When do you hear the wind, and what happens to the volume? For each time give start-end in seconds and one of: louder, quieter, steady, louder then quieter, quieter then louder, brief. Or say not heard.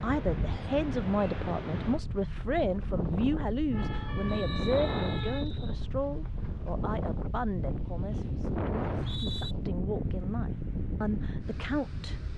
0.0-12.3 steady.